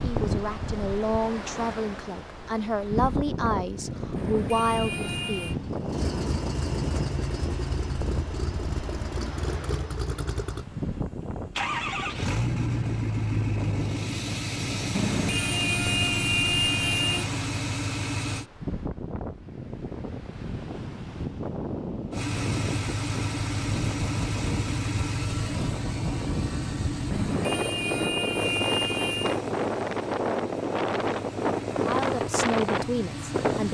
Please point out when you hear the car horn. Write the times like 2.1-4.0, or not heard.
4.2-5.5, 14.9-17.3, 27.1-29.4.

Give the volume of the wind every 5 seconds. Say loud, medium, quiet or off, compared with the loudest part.
medium, medium, medium, medium, medium, loud, loud.